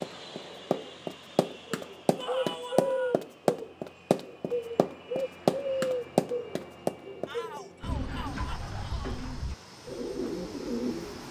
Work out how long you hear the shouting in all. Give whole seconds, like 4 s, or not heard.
3 s.